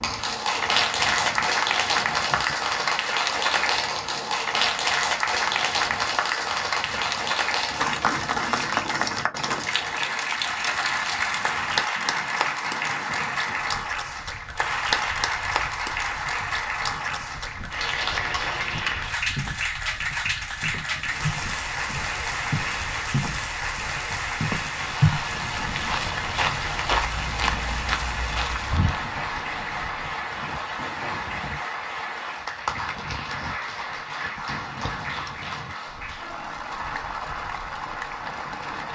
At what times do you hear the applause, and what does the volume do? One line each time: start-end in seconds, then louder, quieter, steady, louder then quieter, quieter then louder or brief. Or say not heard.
0.0-38.8 quieter.